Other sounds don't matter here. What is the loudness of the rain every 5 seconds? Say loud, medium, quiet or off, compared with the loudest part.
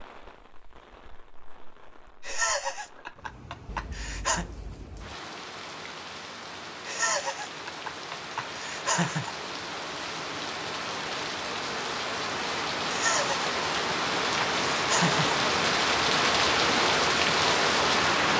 quiet, quiet, medium, loud.